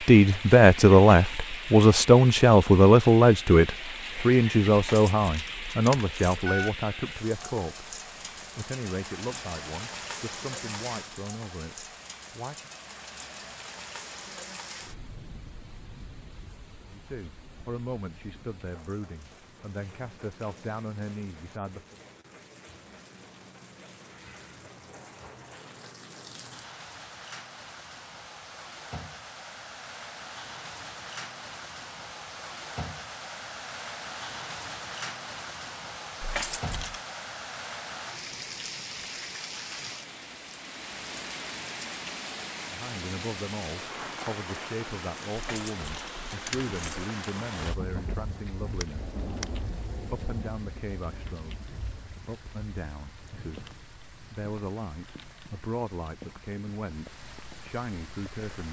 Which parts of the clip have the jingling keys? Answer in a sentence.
You can hear the jingling keys from 4.8 to 6.7 s, from 36.2 to 37.0 s and from 45.4 to 47.1 s.